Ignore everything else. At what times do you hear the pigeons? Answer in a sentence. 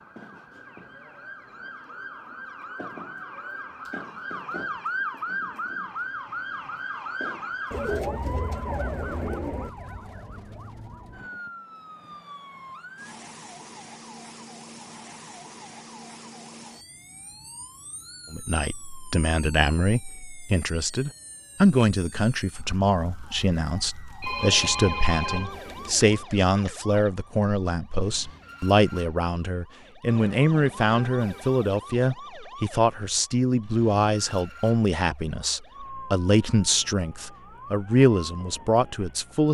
You can hear the pigeons from 7.7 to 9.7 s and from 24.2 to 26.2 s.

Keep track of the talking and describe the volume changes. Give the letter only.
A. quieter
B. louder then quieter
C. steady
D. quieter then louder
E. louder
C.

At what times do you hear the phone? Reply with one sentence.
The phone can be heard from 24.2 to 26.8 s.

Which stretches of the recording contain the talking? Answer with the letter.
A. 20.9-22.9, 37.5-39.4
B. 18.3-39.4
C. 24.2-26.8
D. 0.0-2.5
B.